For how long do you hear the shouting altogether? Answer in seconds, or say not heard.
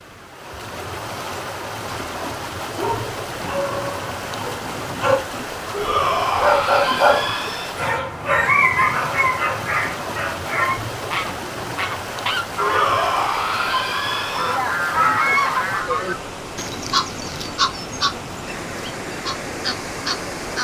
4 s.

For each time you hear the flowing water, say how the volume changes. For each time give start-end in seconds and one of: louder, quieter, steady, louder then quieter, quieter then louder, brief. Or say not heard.
0.0-20.5 steady.